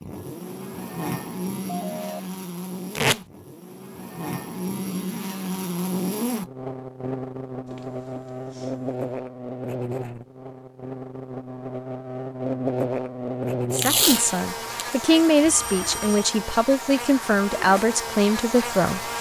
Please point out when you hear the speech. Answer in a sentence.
You can hear the speech from 13.7 to 19.0 s.